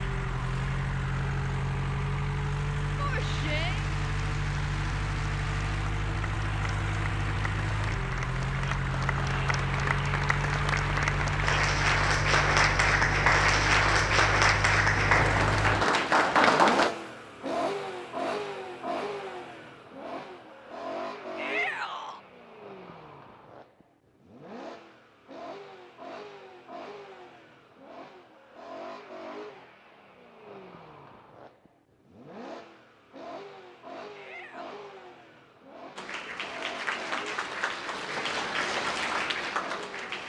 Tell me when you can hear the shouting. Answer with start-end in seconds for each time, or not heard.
3.0-3.9, 21.4-22.2, 34.1-34.8.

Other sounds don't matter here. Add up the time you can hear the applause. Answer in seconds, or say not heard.
18 s.